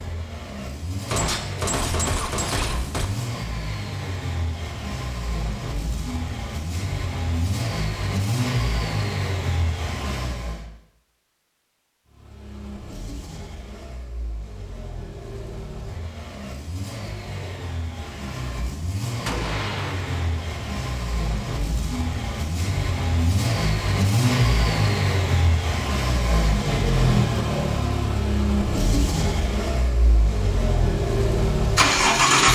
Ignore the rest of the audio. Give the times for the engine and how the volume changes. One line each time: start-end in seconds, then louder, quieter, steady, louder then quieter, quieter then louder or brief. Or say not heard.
0.0-10.7 louder
12.1-32.5 louder.